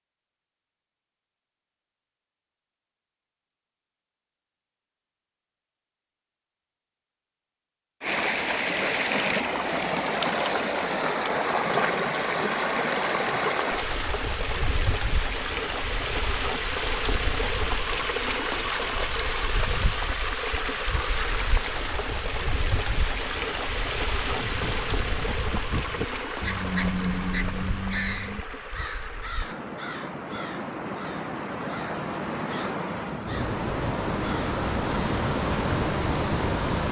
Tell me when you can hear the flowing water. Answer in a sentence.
The flowing water can be heard from 8.0 to 36.8 s.